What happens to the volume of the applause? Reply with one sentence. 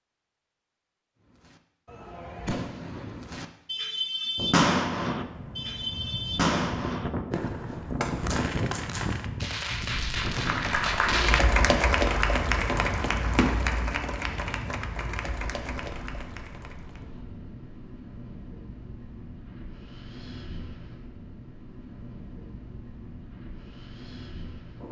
The loudness of the applause goes down.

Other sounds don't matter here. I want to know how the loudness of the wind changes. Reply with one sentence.
The loudness of the wind goes down.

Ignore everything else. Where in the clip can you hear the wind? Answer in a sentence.
You can hear the wind from 4.3 to 24.8 s.